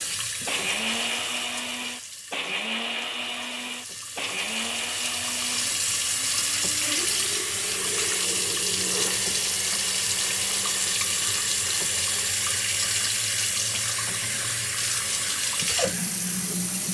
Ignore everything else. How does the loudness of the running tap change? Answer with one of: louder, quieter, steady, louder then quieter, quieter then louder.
louder.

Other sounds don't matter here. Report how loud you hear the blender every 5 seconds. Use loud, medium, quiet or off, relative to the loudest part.
loud, medium, medium, medium.